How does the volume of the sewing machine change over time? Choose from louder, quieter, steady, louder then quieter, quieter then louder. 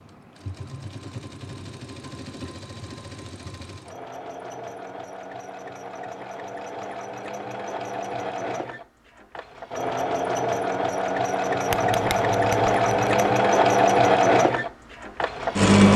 louder.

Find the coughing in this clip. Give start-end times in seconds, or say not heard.
not heard.